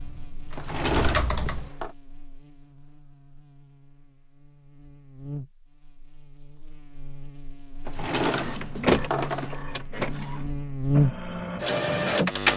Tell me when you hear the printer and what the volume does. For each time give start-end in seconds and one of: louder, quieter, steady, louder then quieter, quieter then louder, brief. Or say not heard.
8.4-12.5 quieter then louder.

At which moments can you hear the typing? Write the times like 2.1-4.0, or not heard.
0.0-1.7.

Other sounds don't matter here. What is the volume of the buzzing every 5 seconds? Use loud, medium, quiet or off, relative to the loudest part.
quiet, quiet, loud.